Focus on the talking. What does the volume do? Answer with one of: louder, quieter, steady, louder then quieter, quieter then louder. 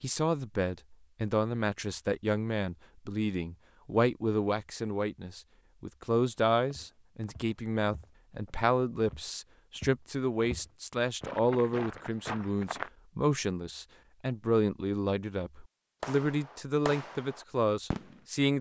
steady.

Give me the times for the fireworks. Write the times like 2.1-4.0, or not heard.
16.0-18.5.